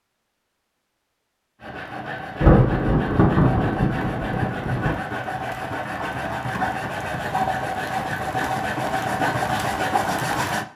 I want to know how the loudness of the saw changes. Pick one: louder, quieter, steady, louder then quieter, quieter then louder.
louder.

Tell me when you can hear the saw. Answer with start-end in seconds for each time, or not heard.
1.6-10.7.